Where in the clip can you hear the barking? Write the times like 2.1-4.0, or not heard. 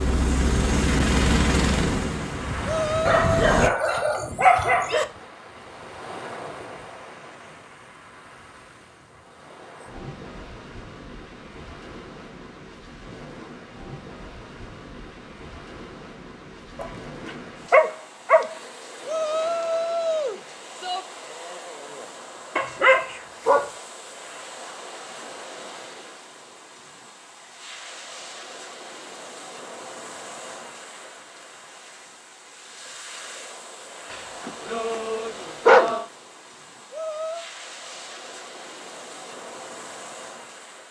3.0-5.0, 16.8-18.6, 22.6-23.7, 34.1-36.0.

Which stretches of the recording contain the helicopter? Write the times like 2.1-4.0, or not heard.
0.0-3.7.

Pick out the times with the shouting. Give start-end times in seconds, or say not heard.
2.6-3.5, 19.1-21.1, 36.9-37.5.